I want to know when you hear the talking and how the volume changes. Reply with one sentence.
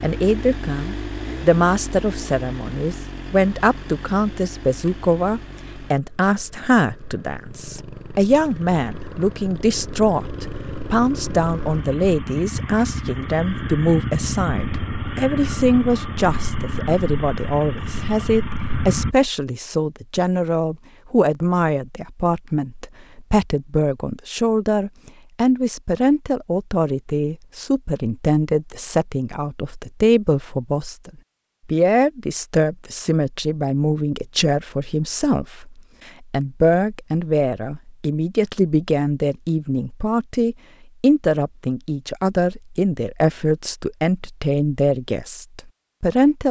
You can hear the talking from 0.0 to 46.4 s, at a steady volume.